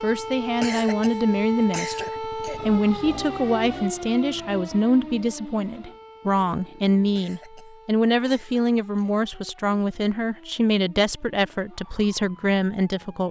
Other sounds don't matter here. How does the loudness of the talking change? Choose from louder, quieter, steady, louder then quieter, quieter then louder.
steady.